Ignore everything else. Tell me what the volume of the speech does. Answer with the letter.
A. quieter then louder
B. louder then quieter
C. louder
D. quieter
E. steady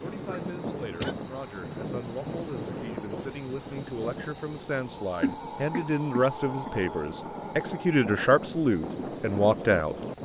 C.